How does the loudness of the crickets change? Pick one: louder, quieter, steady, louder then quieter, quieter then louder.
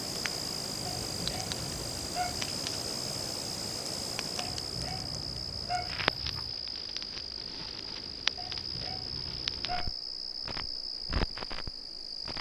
steady.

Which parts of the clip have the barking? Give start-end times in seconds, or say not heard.
1.1-2.5, 4.6-6.5, 8.3-9.9.